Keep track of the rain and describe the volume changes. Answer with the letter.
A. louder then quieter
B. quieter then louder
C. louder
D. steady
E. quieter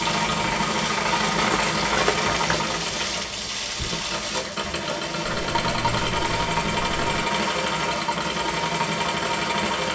E.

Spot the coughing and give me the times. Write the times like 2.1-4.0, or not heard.
not heard.